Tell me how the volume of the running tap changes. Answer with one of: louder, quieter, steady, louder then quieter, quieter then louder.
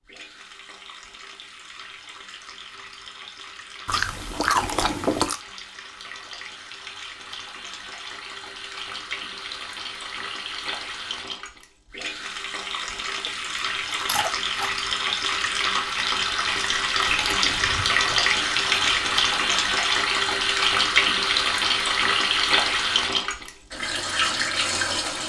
louder.